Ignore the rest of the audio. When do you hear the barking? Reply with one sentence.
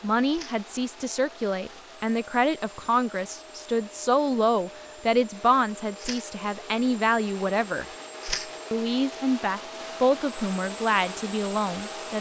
The barking can't be heard in this clip.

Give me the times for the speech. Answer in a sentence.
The speech can be heard from 0.0 to 7.8 s and from 8.7 to 12.1 s.